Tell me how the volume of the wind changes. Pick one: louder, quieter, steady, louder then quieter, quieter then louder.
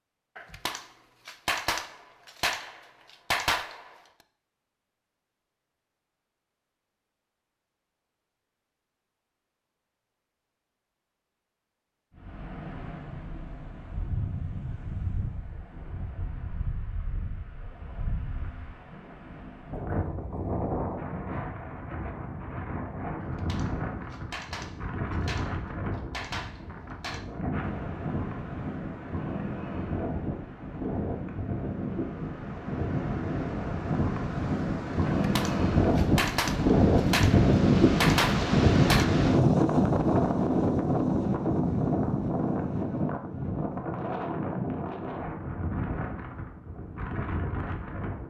louder then quieter.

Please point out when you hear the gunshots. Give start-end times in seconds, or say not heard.
0.3-3.9, 23.2-27.2, 35.2-39.0.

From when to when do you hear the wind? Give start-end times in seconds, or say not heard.
12.2-48.2.